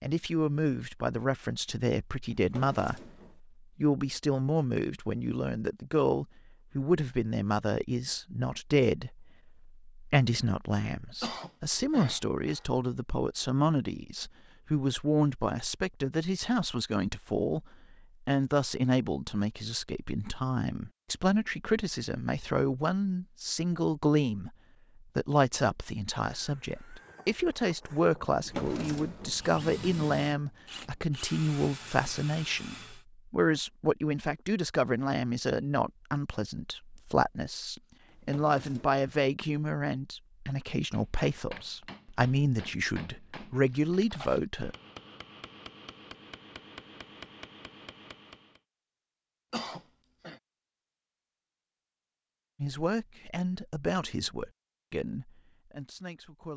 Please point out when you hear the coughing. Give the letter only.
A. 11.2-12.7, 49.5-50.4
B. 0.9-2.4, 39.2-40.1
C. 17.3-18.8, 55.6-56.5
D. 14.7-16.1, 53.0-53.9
A.